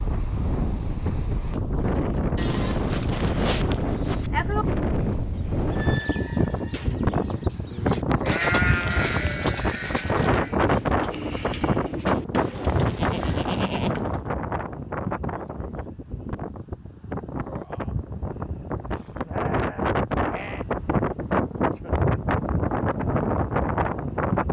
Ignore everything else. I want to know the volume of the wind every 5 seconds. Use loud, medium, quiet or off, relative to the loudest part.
loud, loud, loud, medium, loud.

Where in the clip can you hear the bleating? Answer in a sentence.
You can hear the bleating from 2.4 to 4.3 s, from 8.1 to 10.5 s, from 12.8 to 14.0 s and from 18.9 to 20.6 s.